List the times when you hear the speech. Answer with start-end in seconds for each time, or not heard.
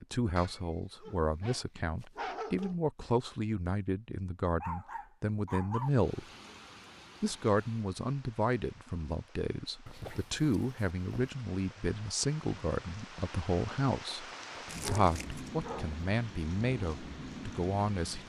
0.0-6.2, 7.2-14.2, 14.8-18.2.